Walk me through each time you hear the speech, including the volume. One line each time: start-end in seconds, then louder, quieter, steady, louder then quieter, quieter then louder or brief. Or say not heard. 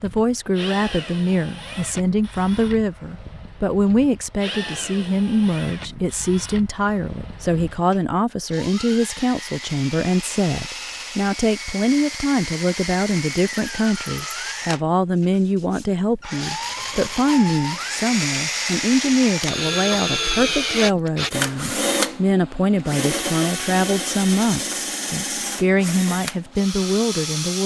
0.0-27.6 steady.